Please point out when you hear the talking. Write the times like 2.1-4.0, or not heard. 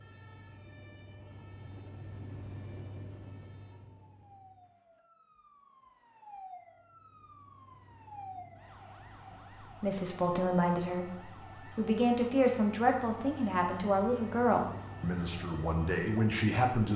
9.8-16.9.